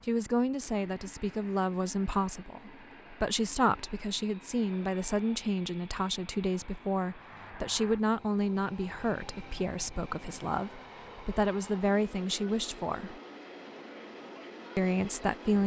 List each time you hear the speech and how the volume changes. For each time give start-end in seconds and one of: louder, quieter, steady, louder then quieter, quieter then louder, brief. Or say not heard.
0.1-13.2 steady
14.8-15.6 brief.